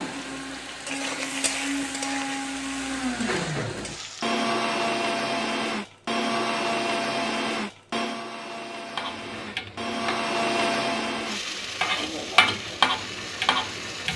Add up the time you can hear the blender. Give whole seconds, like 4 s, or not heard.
14 s.